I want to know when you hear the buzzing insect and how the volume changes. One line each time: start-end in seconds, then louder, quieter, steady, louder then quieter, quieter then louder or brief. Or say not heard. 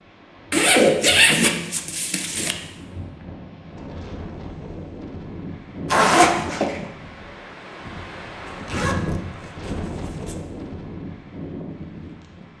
not heard.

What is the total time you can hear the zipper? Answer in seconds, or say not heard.
5 s.